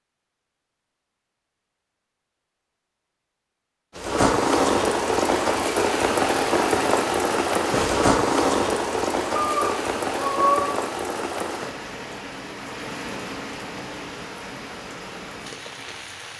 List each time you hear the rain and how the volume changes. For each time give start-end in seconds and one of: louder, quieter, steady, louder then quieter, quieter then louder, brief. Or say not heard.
4.0-16.3 quieter.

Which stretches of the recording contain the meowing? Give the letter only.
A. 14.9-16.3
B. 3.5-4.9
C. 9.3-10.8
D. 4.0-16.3
C.